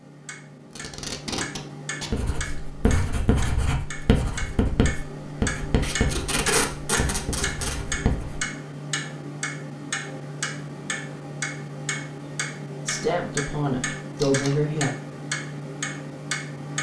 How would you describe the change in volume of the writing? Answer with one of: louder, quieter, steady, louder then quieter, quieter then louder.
quieter.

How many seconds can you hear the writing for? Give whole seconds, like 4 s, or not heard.
6 s.